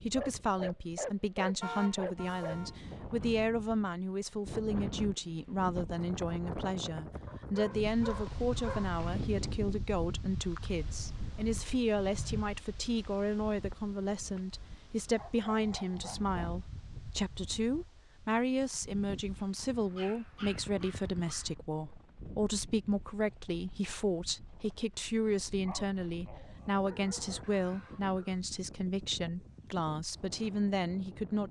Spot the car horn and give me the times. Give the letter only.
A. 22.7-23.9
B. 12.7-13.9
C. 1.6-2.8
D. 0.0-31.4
C.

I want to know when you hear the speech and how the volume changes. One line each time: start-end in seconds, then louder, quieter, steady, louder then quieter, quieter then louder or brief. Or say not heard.
0.0-31.4 steady.